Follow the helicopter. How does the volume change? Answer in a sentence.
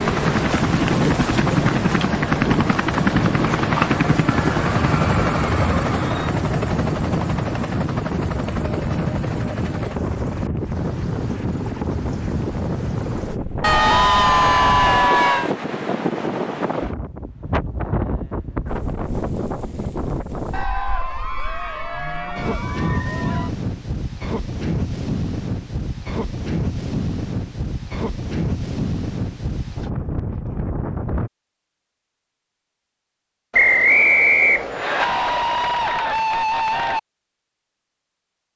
The loudness of the helicopter goes down.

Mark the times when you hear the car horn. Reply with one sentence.
You can't hear the car horn here.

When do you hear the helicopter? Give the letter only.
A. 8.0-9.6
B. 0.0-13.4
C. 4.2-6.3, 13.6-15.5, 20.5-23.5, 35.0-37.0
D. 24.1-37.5
B.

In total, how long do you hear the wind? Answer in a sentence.
You can hear the wind for 31 seconds altogether.